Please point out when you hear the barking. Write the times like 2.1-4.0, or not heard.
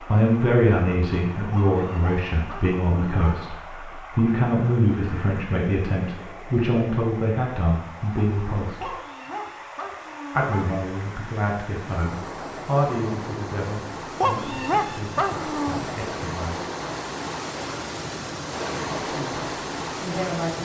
1.5-3.4, 8.8-10.7, 14.2-15.8.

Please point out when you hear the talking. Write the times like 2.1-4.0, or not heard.
0.0-8.9, 10.3-16.6, 18.9-20.6.